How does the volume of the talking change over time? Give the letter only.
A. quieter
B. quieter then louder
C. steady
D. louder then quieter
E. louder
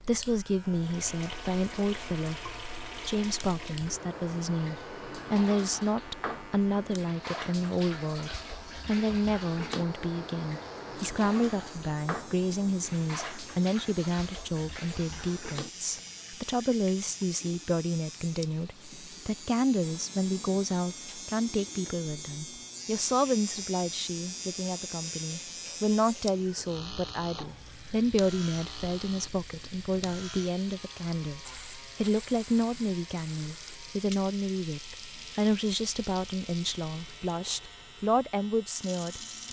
C.